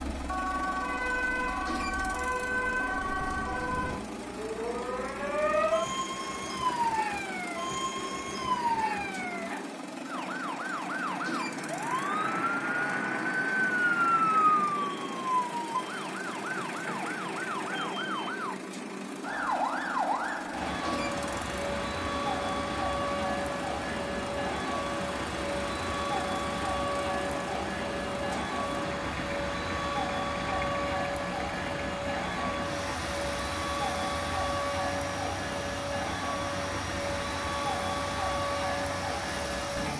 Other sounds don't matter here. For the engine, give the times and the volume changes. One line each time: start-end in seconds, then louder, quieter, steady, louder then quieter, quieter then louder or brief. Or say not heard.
0.0-39.9 steady.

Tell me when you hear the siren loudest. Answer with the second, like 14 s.
14 s.